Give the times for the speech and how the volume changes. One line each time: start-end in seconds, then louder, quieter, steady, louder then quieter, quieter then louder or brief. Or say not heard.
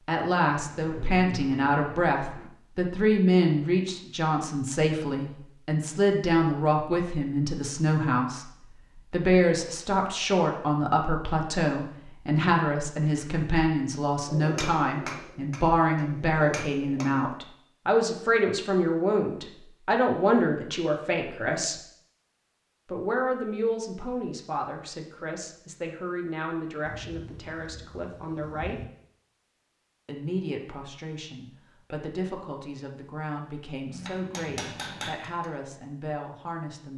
0.1-21.8 steady
22.9-28.9 quieter
30.1-36.9 steady.